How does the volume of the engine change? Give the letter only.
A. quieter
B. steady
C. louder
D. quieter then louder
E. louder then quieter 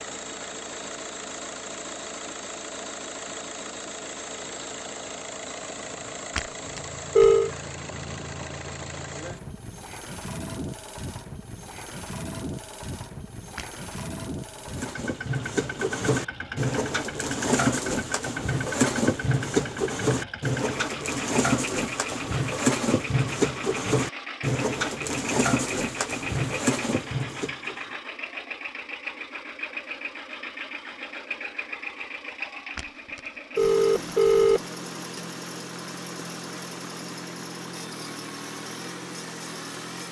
B.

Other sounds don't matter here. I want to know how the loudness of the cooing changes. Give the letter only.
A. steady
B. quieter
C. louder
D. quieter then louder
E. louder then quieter
A.